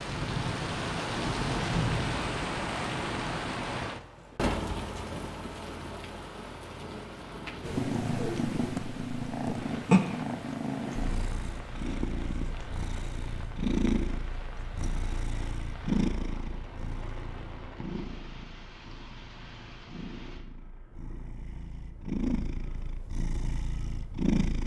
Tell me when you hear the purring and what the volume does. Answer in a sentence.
You can hear the purring from 7.6 to 24.6 s, getting quieter then louder.